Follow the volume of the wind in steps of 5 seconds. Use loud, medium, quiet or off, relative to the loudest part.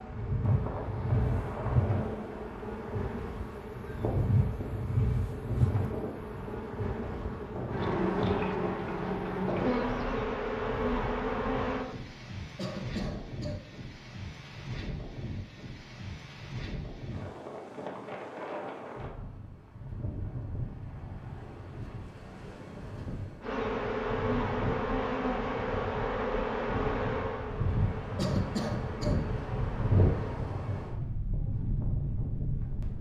medium, medium, medium, medium, medium, loud, loud.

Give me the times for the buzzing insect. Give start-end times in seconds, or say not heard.
0.0-11.8, 23.4-30.4.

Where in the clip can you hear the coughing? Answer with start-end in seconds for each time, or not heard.
12.6-13.7, 28.1-29.2.